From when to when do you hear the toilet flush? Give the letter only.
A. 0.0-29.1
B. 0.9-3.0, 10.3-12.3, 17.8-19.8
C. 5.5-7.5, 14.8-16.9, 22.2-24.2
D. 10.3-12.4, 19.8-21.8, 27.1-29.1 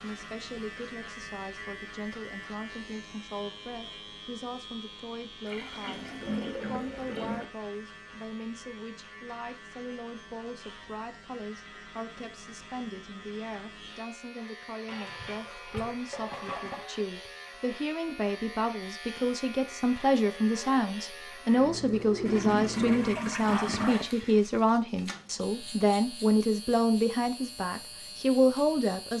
C.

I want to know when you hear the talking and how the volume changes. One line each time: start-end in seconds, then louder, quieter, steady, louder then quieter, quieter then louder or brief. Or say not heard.
0.0-29.1 louder.